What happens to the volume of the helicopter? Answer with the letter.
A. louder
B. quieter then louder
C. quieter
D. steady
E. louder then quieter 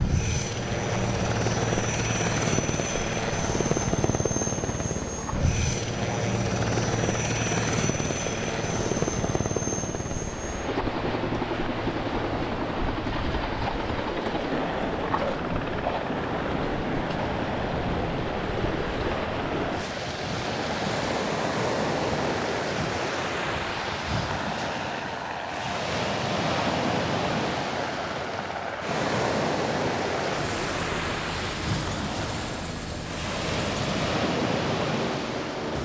C.